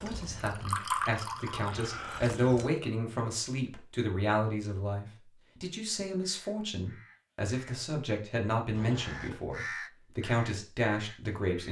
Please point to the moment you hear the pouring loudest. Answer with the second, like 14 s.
1 s.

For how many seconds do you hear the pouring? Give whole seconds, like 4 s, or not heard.
3 s.